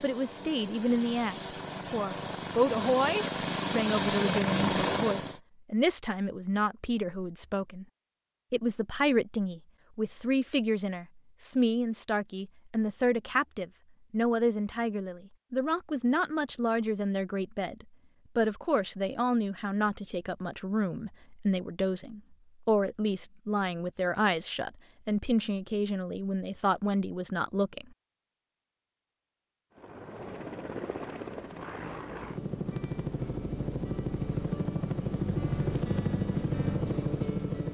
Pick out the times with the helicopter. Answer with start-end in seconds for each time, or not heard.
0.0-5.4, 29.8-37.6.